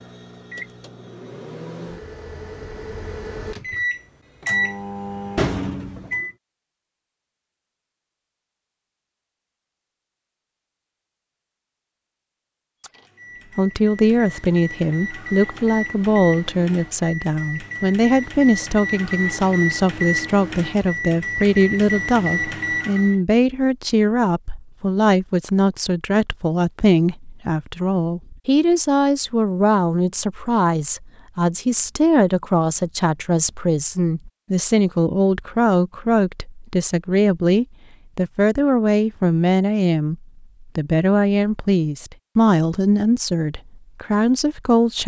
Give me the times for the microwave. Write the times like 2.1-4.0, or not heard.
0.0-6.3, 12.8-23.1.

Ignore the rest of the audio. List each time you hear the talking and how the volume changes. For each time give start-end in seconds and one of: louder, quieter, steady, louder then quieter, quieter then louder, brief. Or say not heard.
13.6-45.0 steady.